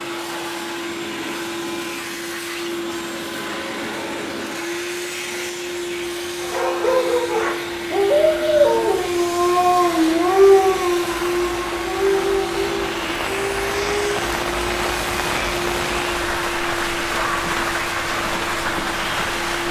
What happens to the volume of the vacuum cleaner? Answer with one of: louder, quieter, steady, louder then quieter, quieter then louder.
steady.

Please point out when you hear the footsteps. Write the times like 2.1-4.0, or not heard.
not heard.